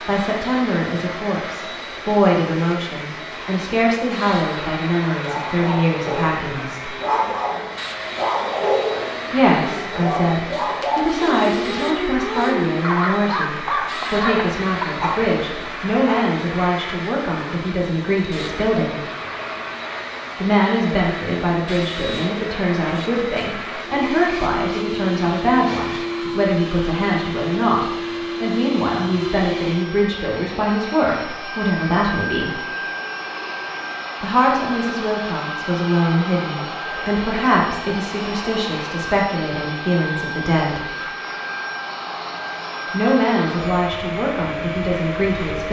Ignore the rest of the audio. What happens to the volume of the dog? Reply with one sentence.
The loudness of the dog stays about the same.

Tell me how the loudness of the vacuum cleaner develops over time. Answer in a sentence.
The volume of the vacuum cleaner stays about the same.